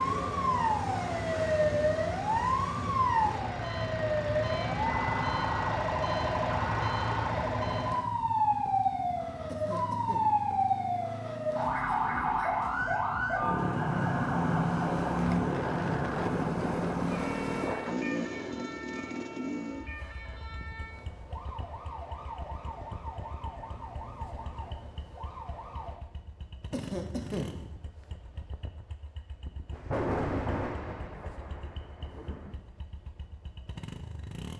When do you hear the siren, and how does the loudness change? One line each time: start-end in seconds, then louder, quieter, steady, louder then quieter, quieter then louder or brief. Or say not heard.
0.0-25.9 quieter.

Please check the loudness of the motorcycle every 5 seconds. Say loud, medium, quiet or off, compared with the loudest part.
medium, medium, medium, loud, quiet, quiet, quiet.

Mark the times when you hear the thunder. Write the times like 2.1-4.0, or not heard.
29.7-32.6.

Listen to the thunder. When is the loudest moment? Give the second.
30 s.